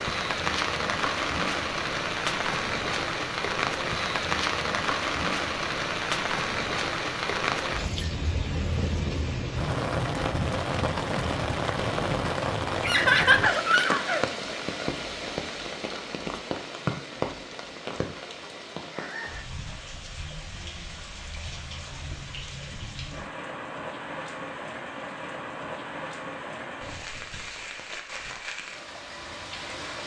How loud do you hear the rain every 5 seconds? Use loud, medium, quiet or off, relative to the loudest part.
loud, loud, loud, medium, medium, medium.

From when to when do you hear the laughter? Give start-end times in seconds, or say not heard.
12.8-14.2.